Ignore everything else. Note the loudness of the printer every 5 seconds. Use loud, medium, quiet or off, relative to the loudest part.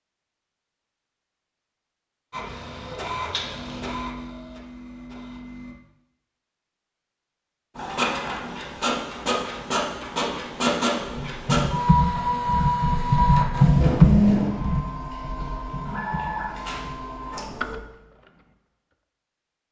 medium, medium, loud, medium.